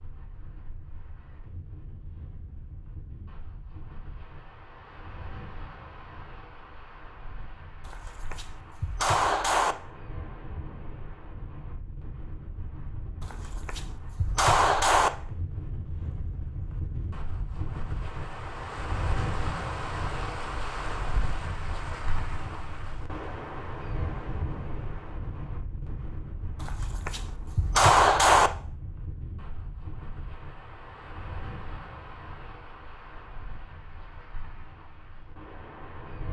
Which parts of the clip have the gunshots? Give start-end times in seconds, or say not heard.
7.8-9.8, 13.2-15.1, 26.6-28.5.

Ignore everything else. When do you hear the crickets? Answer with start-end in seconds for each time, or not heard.
not heard.